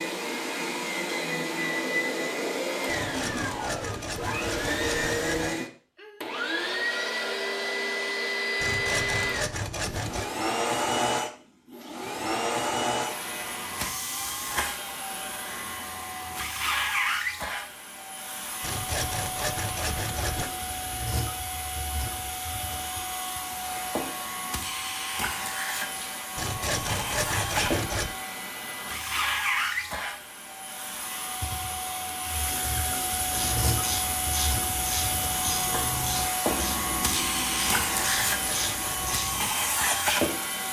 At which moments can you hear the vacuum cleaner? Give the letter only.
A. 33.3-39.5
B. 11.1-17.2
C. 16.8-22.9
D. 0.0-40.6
D.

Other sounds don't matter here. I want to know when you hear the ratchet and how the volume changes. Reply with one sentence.
You can hear the ratchet from 33.3 to 39.5 s, at a steady volume.